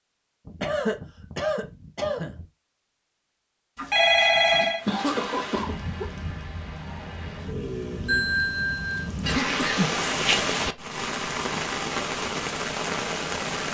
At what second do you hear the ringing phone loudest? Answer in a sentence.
The volume of the ringing phone peaks at 4 seconds.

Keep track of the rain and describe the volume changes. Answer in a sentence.
The volume of the rain goes up.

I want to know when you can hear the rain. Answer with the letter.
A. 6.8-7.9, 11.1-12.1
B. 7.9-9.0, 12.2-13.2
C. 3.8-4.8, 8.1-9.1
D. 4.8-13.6
D.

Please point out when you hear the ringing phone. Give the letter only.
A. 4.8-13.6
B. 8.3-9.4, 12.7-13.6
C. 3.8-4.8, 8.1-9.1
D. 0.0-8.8
C.